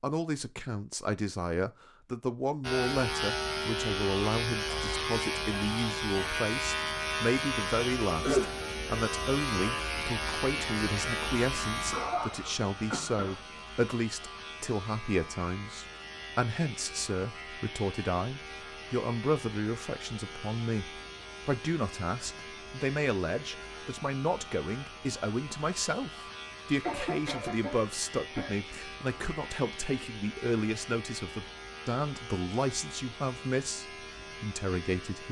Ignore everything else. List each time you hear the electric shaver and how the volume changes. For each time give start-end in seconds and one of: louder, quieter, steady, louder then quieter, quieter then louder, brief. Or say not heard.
2.6-35.2 quieter.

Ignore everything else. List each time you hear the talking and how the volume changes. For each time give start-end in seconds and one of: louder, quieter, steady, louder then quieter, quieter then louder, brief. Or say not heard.
0.0-35.2 steady.